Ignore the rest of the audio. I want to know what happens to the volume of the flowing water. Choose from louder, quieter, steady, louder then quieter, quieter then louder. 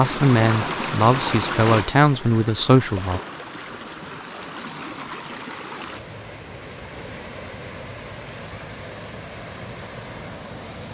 quieter.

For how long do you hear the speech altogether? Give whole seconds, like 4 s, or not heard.
3 s.